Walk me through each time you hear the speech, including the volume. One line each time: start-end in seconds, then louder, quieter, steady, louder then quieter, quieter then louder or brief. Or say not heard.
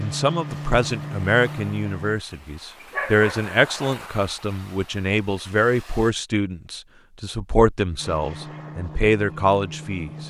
0.0-10.2 steady.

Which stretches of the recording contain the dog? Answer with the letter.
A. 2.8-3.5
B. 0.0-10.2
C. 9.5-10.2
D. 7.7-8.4
A.